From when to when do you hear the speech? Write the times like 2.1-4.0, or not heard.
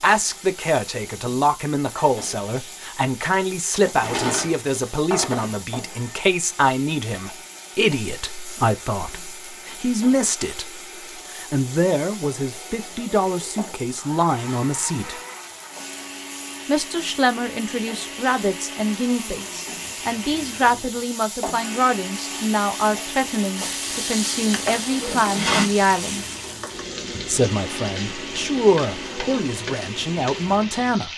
0.0-15.2, 16.6-26.2, 27.2-31.1.